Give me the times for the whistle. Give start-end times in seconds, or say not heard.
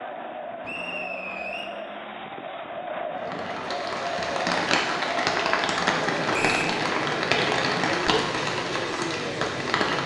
0.6-1.6, 6.3-6.8.